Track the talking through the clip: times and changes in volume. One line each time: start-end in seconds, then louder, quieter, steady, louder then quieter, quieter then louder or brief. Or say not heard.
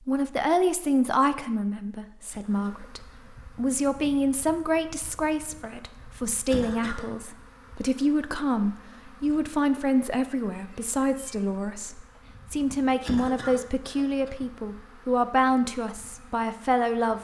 0.1-17.1 steady.